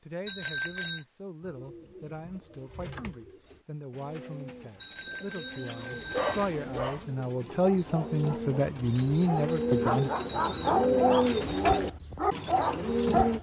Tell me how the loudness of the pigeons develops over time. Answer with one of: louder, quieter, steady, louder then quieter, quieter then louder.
louder.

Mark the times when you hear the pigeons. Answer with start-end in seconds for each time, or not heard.
1.4-13.3.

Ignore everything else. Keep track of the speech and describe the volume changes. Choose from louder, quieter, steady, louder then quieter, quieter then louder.
louder.